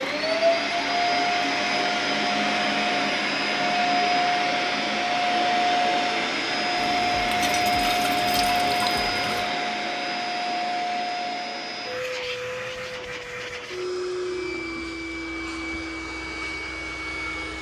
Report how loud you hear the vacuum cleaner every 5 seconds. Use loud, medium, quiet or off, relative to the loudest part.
loud, loud, medium, medium.